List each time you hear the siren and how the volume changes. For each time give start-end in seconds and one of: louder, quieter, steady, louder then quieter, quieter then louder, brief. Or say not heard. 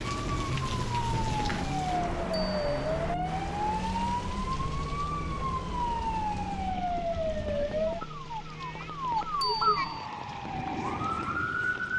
0.0-11.9 steady.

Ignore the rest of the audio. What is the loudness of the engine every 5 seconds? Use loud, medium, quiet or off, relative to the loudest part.
loud, medium, medium.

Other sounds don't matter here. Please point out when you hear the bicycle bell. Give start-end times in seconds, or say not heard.
2.3-2.9, 9.4-10.1.